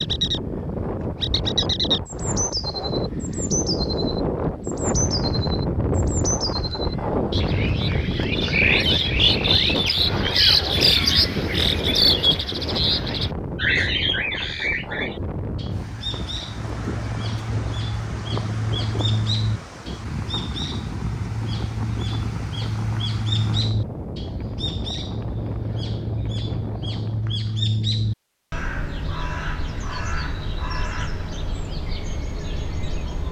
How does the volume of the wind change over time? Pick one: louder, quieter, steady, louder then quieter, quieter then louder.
quieter.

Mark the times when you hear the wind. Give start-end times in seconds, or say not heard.
0.0-27.4.